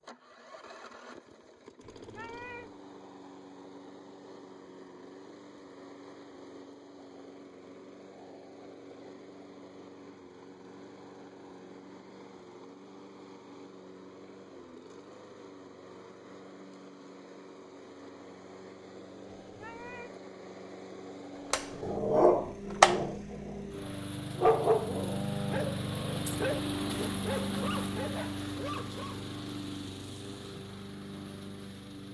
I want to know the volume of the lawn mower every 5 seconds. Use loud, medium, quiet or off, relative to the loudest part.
quiet, quiet, quiet, quiet, medium, loud, medium.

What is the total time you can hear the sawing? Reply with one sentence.
You can't hear the sawing here.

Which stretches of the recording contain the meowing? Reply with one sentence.
You can hear the meowing from 1.8 to 2.8 s and from 19.4 to 20.1 s.